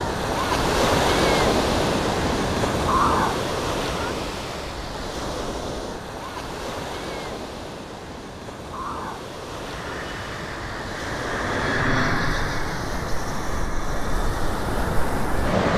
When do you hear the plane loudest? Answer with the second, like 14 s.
12 s.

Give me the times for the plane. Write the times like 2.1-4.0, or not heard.
9.6-15.6.